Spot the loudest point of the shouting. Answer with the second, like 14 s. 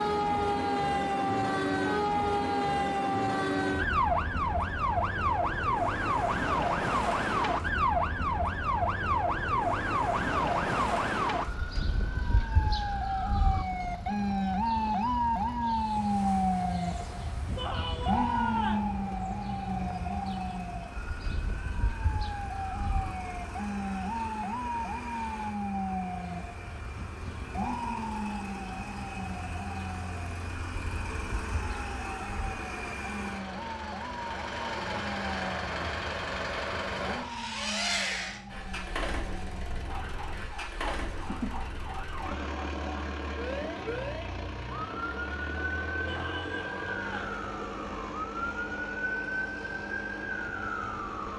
18 s.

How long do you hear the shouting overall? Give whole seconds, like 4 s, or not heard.
3 s.